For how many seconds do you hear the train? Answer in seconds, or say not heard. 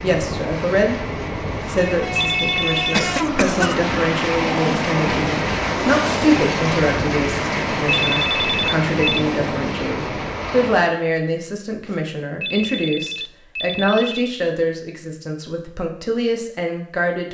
11 s.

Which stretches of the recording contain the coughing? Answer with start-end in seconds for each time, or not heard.
2.9-3.9.